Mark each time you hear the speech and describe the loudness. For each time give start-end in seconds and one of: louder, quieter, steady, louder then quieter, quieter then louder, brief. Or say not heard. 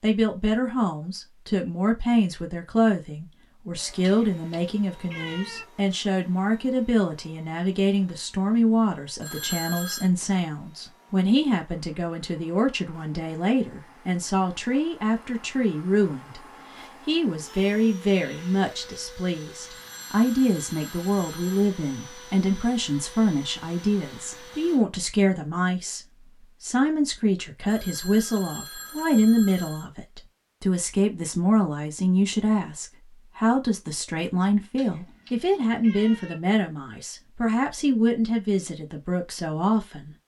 0.0-26.0 steady
26.6-40.1 steady.